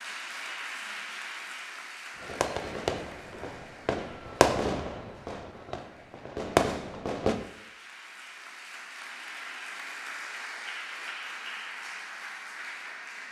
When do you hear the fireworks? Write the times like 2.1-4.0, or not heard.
2.1-7.3.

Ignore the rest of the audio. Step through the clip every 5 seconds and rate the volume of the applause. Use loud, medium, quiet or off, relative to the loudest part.
loud, medium, loud.